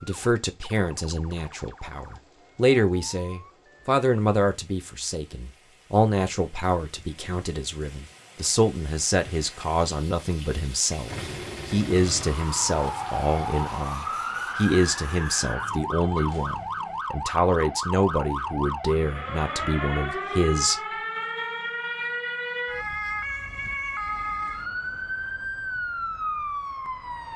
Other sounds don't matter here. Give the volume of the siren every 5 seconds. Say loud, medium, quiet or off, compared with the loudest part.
quiet, off, loud, loud, loud, loud.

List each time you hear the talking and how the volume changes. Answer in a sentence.
The talking can be heard from 0.0 to 20.9 s, at a steady volume.